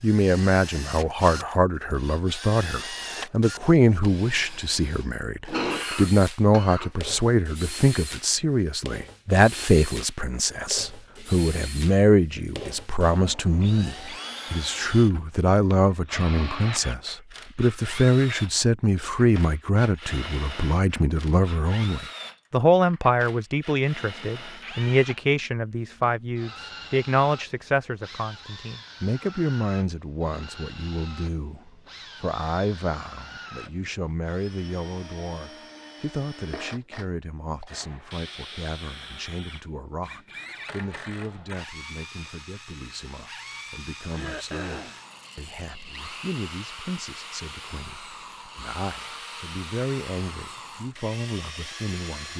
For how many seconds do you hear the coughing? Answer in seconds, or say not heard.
3 s.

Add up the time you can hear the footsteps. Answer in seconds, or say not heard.
not heard.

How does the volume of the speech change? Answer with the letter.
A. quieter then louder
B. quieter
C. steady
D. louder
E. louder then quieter
B.